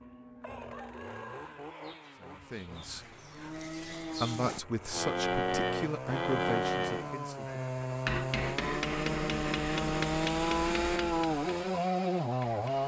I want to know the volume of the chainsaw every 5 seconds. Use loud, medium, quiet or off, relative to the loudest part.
quiet, medium, loud.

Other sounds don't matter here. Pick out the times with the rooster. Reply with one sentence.
You can hear the rooster from 0.4 to 1.9 s.